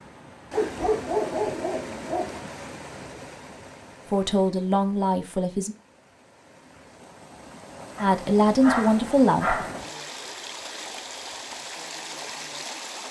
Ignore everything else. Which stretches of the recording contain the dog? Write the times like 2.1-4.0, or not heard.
0.5-2.4, 8.0-9.8.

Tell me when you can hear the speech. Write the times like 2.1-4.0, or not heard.
4.1-5.8, 8.0-9.7.